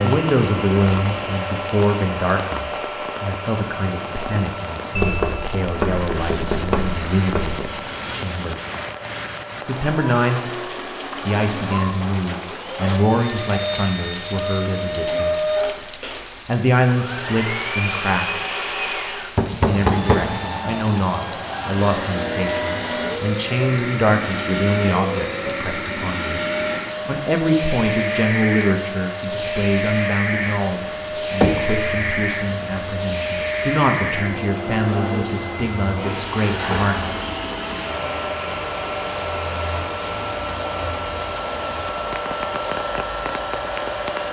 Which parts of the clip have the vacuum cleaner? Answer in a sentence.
You can hear the vacuum cleaner from 0.0 to 44.2 s.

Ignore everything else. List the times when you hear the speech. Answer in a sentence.
The speech can be heard from 0.0 to 8.6 s, from 9.7 to 10.6 s, from 11.2 to 15.4 s, from 16.4 to 18.4 s, from 19.6 to 26.4 s and from 27.1 to 37.2 s.